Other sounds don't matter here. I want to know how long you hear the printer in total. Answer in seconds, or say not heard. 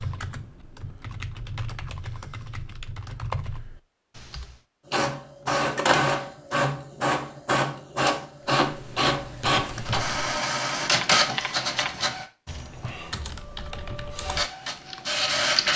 9 s.